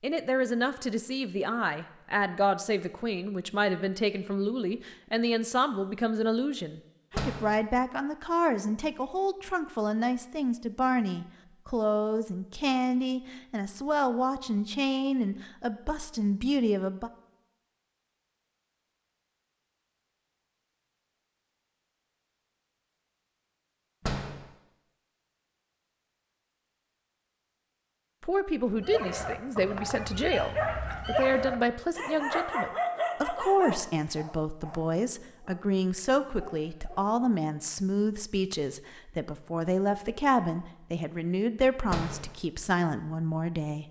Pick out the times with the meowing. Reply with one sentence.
You can't hear the meowing here.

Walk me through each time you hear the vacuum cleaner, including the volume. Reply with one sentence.
The vacuum cleaner can't be heard in this clip.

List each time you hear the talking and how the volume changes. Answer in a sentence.
You can hear the talking from 0.0 to 17.1 s, at a steady volume; and from 28.2 to 43.8 s, at a steady volume.